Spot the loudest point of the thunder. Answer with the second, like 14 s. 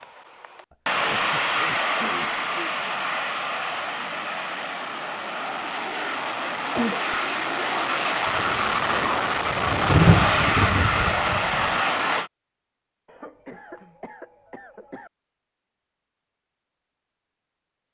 10 s.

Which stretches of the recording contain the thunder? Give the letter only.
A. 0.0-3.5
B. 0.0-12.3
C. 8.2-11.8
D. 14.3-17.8
C.